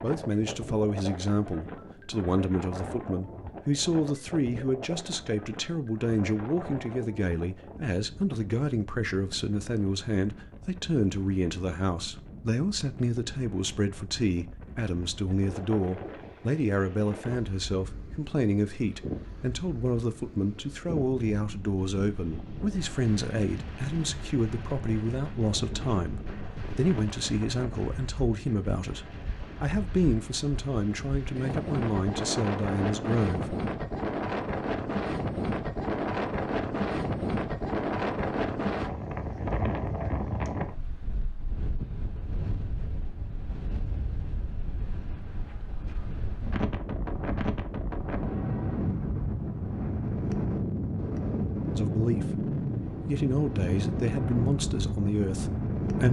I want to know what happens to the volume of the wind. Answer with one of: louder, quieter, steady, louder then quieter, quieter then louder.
louder.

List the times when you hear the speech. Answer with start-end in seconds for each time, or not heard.
0.0-33.5, 51.7-56.0.